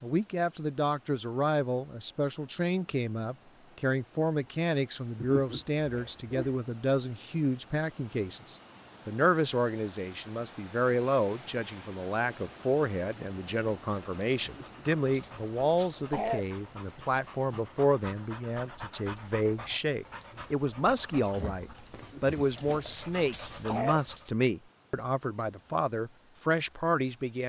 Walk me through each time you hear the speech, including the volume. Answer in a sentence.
You can hear the speech from 0.0 to 27.4 s, at a steady volume.